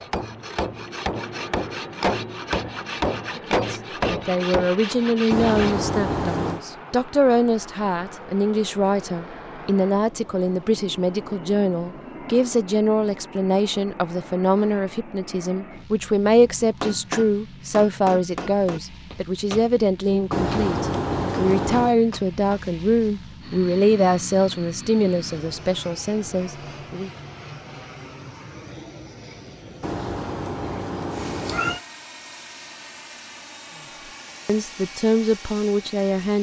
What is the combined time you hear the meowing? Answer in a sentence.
You can hear the meowing for 5 seconds altogether.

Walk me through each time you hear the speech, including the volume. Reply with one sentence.
You can hear the speech from 3.4 to 27.1 s, at a steady volume; and briefly from 34.5 to 36.3 s.